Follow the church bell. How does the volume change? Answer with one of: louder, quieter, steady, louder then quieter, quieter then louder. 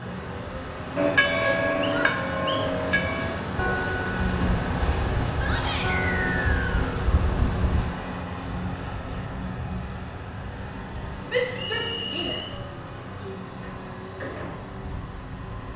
quieter.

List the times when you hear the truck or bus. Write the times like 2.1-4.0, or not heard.
0.0-15.7.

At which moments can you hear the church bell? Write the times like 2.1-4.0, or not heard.
0.9-7.8.